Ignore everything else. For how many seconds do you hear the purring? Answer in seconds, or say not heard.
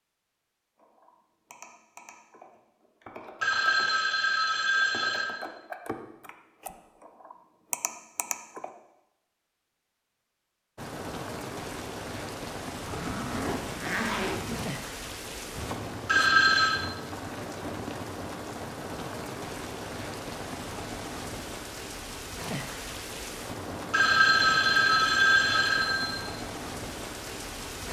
not heard.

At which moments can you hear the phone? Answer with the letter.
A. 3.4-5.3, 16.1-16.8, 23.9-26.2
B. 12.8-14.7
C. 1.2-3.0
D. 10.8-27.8
A.